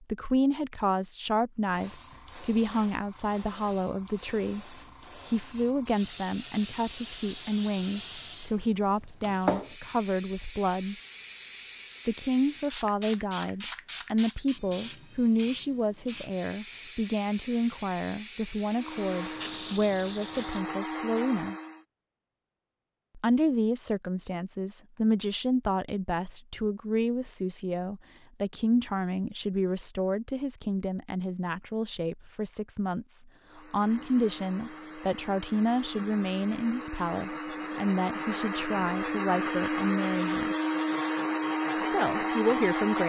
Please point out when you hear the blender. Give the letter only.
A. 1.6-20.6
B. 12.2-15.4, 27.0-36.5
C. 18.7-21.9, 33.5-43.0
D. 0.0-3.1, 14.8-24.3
C.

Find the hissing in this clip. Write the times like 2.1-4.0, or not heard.
1.6-20.6.